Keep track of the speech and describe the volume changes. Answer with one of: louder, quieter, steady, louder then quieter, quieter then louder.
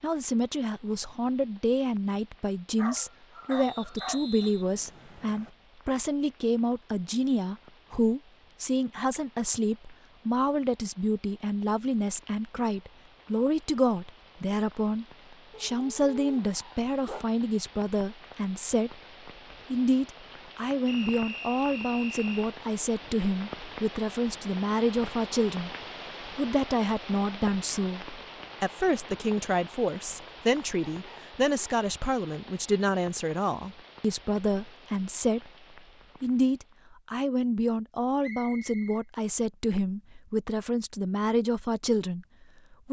steady.